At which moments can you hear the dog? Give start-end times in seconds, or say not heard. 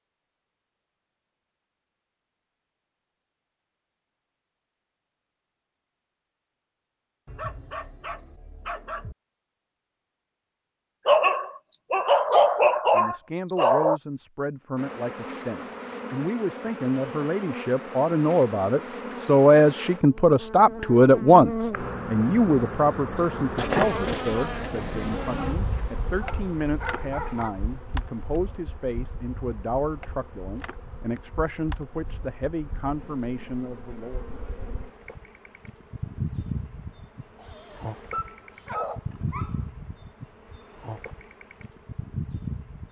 7.2-9.2, 11.1-14.0, 24.9-27.6, 37.4-39.6.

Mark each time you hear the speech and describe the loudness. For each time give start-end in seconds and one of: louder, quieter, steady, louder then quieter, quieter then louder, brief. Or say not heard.
12.9-34.2 louder then quieter.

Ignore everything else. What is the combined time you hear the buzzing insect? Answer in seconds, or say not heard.
28 s.